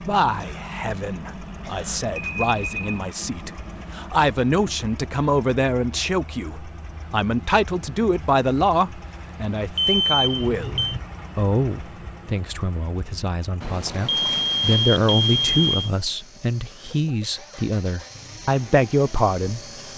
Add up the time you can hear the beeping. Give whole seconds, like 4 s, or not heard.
4 s.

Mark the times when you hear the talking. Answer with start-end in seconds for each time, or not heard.
0.1-19.7.